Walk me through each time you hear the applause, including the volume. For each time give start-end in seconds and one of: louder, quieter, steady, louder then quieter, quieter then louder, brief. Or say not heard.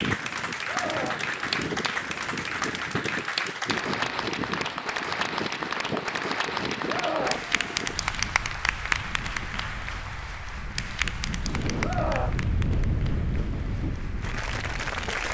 0.0-15.2 quieter.